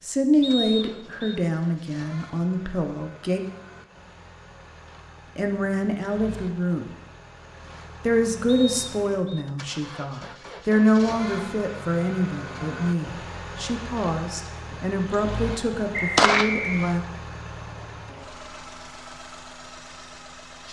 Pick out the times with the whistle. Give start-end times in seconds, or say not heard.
0.4-1.4, 8.4-9.4, 15.9-16.9.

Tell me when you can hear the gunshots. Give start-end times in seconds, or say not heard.
15.7-16.5.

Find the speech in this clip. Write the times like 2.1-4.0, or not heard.
0.0-3.4, 5.3-6.9, 8.1-17.0.